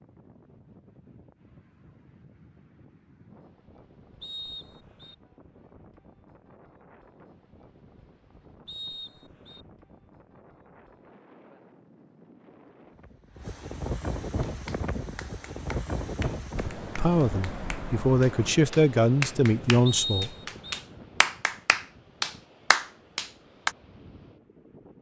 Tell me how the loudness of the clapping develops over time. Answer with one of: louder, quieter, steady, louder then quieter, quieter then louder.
quieter then louder.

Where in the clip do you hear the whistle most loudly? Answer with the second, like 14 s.
20 s.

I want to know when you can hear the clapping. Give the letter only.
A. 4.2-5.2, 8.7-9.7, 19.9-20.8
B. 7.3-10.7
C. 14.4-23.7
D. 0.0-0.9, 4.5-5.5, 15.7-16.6
C.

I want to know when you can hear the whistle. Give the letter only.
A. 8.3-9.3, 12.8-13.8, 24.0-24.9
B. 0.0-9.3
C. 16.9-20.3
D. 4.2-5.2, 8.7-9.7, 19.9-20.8
D.